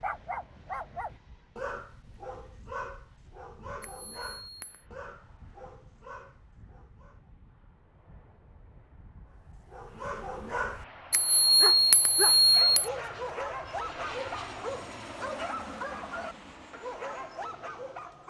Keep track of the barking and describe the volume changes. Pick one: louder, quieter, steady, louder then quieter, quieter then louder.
quieter then louder.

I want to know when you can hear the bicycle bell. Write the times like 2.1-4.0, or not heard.
3.8-4.8, 11.1-12.9.